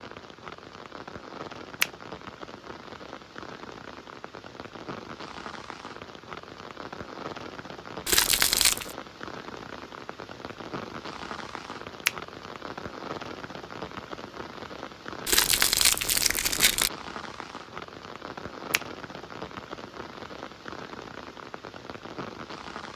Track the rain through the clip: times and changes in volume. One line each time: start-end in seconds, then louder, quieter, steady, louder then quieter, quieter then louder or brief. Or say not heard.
0.0-22.9 steady.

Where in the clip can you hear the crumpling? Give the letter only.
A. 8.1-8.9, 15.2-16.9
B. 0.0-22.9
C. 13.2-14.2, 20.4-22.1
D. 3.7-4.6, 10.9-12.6
A.